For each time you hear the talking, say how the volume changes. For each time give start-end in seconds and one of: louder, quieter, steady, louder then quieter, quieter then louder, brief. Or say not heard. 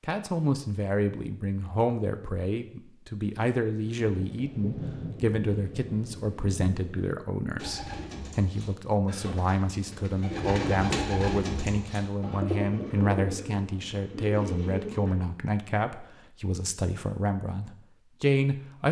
0.0-18.8 steady.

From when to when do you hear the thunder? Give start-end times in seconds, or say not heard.
3.8-7.2.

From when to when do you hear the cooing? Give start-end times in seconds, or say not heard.
7.5-15.2.